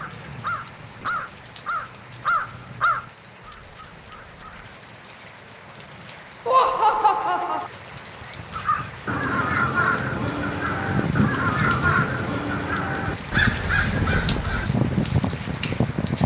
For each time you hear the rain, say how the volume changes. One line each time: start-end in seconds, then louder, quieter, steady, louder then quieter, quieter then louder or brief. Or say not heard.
0.0-16.2 louder.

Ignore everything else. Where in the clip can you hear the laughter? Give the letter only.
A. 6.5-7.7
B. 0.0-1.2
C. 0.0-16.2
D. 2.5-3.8
A.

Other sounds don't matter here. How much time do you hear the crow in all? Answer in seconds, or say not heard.
11 s.